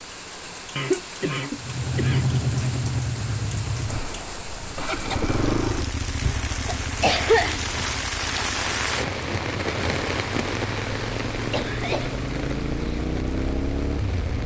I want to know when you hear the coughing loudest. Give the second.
7 s.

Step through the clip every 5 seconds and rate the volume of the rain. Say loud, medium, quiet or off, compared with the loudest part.
medium, loud, loud.